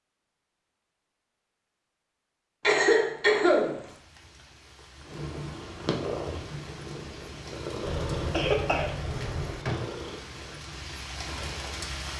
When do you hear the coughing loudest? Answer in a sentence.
The loudest moment of the coughing is at 3 seconds.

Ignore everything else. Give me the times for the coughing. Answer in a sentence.
The coughing can be heard from 2.6 to 3.8 s and from 7.8 to 9.6 s.